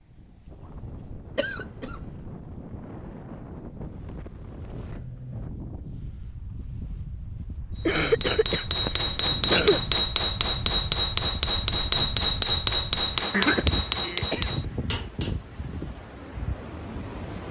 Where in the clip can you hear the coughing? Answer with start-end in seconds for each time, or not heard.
1.4-2.0, 7.8-9.8, 13.3-14.5.